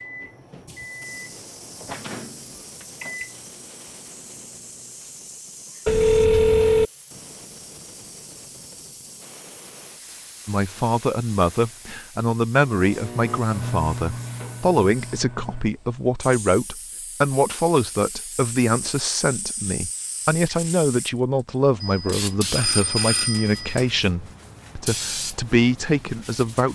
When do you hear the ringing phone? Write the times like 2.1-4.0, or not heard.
5.8-6.9, 21.8-23.9.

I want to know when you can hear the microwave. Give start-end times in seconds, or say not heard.
0.0-5.0, 12.8-15.7.